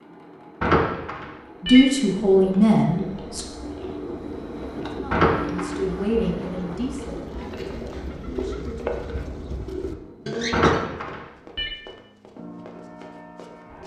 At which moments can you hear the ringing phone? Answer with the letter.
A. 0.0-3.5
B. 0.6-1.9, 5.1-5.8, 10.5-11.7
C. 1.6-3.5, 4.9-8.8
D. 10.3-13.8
B.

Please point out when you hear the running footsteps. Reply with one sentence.
The running footsteps can be heard from 10.3 to 13.8 s.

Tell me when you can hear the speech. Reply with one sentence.
The speech can be heard from 1.6 to 3.5 s and from 4.9 to 8.8 s.